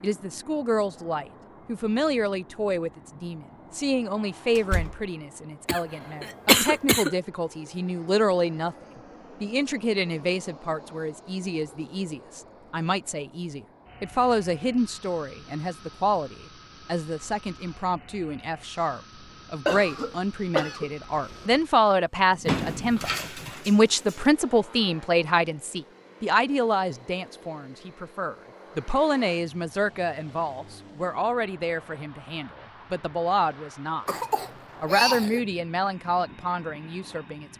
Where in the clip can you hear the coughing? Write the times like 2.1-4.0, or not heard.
5.7-7.1, 19.6-21.4, 34.0-35.5.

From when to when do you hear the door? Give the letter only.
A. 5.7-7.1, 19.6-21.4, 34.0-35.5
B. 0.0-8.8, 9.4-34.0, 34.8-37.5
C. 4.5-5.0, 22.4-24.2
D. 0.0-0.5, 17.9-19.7
C.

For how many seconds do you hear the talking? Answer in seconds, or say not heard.
36 s.